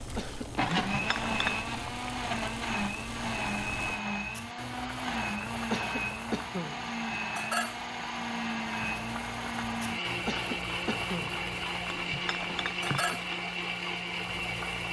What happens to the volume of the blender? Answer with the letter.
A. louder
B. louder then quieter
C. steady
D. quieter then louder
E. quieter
C.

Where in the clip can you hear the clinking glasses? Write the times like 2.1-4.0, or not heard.
0.7-1.6, 11.8-13.2.